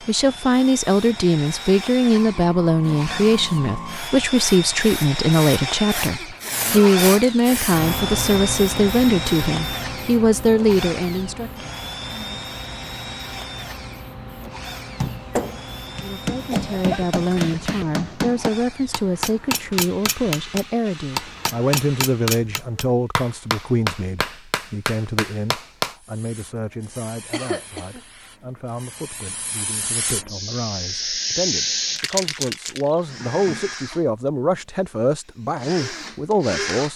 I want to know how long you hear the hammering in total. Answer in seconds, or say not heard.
11 s.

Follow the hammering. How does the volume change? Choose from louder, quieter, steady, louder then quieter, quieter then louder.
steady.